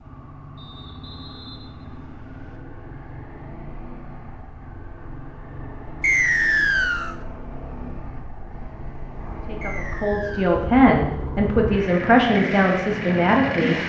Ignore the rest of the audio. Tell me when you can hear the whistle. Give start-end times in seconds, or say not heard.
0.6-2.6, 6.0-7.2, 9.6-10.6.